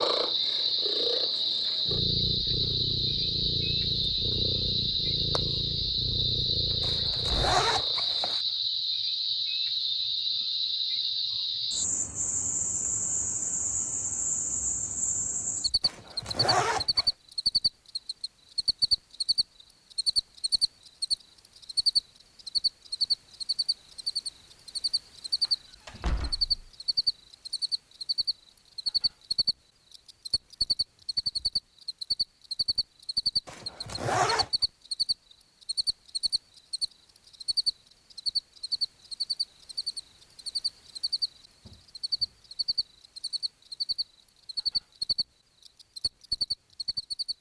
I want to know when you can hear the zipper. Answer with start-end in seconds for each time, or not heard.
6.8-8.4, 15.8-17.1, 33.5-34.5.